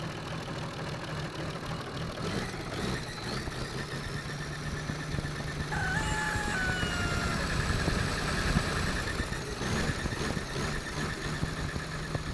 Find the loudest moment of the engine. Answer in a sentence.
The volume of the engine peaks at 8 seconds.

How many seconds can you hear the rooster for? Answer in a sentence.
The rooster can be heard for 2 seconds in total.